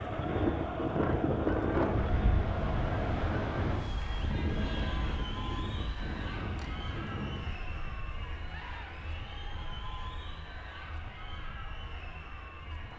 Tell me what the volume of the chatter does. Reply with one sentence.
The volume of the chatter goes down.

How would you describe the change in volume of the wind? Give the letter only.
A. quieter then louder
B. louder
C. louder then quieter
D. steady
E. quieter
E.